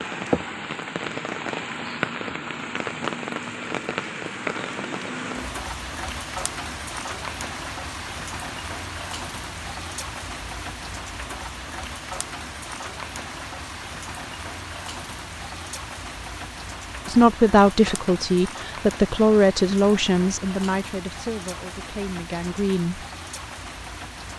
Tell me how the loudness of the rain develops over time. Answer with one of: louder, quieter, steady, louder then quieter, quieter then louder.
quieter.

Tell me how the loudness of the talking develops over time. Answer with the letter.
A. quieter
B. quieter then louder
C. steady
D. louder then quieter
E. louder
A.